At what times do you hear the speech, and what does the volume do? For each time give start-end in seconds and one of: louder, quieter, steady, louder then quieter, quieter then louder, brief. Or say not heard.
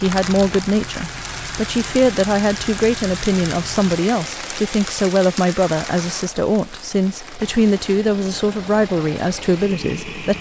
0.0-10.3 steady.